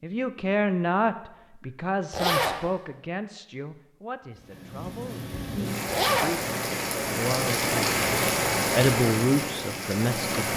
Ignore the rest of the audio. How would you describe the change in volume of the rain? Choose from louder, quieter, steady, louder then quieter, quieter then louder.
louder then quieter.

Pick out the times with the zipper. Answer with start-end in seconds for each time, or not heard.
2.1-2.6, 5.8-6.4.